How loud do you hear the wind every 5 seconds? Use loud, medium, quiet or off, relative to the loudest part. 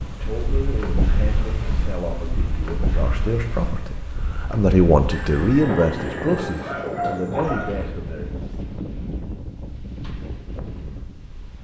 loud, loud, medium.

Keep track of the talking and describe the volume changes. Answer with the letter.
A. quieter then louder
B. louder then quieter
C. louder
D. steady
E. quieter
B.